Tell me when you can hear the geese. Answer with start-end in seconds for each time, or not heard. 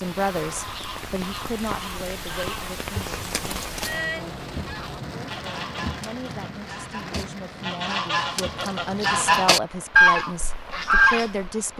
0.2-11.5.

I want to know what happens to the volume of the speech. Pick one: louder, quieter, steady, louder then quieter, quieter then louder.
quieter then louder.